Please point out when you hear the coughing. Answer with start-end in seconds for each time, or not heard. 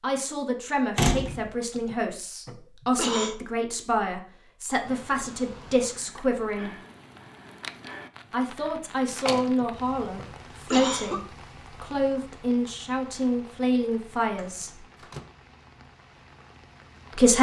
1.7-3.4, 9.4-11.2.